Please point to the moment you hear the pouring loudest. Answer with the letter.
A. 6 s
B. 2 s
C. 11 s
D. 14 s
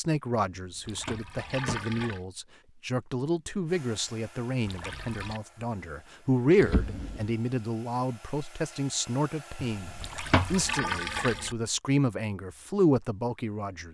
C.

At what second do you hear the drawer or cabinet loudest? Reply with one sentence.
The loudest moment of the drawer or cabinet is at 10 seconds.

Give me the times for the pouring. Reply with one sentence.
You can hear the pouring from 0.8 to 2.2 s, from 4.7 to 5.4 s and from 10.0 to 11.6 s.